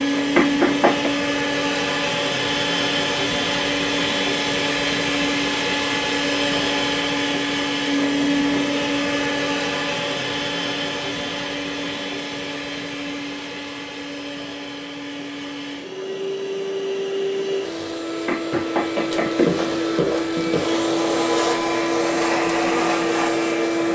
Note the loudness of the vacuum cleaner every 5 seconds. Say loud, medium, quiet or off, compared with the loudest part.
loud, loud, medium, medium, loud.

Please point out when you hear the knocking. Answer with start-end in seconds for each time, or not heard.
0.3-1.1, 18.2-19.7.